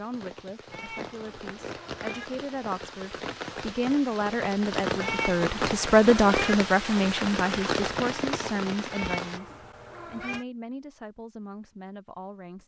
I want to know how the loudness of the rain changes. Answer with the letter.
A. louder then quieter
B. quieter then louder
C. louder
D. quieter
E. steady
C.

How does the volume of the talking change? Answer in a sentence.
The volume of the talking goes up, then down.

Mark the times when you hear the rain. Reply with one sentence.
The rain can be heard from 0.0 to 9.4 s.